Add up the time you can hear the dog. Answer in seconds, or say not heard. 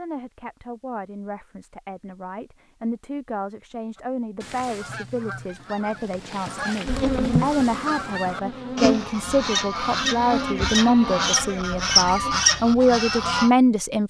not heard.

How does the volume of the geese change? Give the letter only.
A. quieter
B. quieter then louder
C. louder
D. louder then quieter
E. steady
C.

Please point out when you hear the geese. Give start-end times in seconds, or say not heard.
4.0-13.5.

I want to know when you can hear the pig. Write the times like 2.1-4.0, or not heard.
not heard.